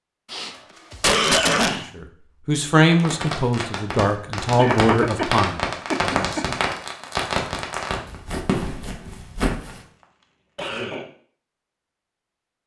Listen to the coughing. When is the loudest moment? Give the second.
1 s.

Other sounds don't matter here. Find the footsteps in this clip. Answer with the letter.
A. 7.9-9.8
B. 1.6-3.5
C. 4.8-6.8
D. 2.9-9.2
A.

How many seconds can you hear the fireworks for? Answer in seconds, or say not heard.
6 s.